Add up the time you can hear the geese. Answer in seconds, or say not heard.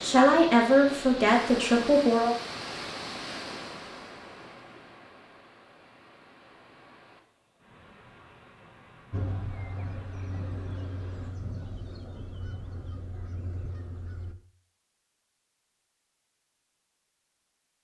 5 s.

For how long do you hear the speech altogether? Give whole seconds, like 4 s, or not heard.
2 s.